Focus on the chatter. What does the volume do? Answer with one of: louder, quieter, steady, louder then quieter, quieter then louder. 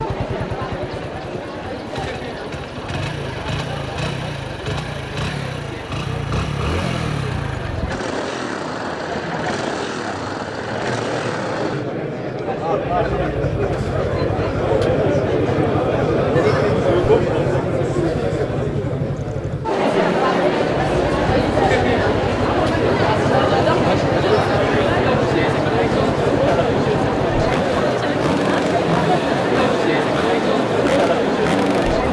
louder.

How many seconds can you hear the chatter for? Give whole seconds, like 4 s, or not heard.
32 s.